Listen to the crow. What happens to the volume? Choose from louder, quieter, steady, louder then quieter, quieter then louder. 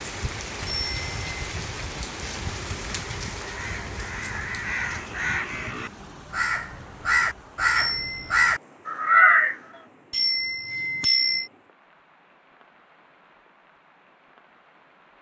louder.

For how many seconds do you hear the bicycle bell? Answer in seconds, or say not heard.
3 s.